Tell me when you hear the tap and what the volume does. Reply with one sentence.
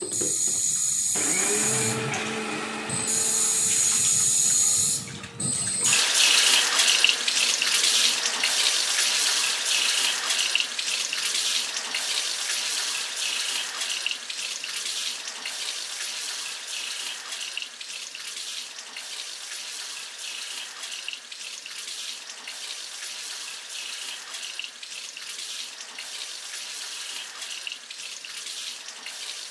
You can hear the tap from 0.0 to 29.4 s, getting quieter.